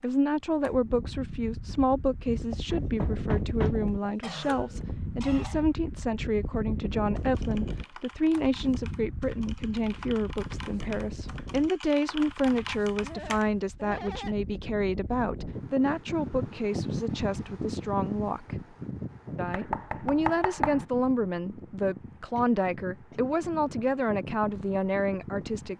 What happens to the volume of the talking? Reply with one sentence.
The volume of the talking stays about the same.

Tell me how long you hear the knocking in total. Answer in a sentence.
The knocking can be heard for 3 seconds in total.